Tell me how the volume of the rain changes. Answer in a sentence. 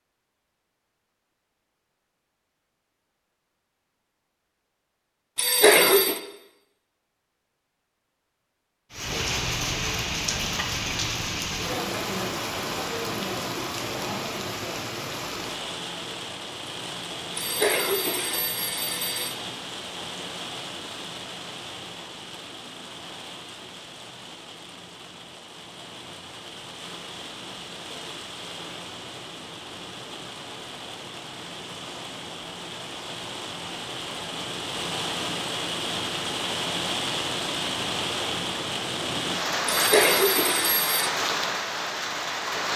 The volume of the rain goes down, then up.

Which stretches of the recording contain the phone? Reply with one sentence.
You can hear the phone from 5.3 to 6.2 s, from 17.4 to 19.4 s and from 39.6 to 41.1 s.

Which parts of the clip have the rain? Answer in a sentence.
You can hear the rain from 8.9 to 42.7 s.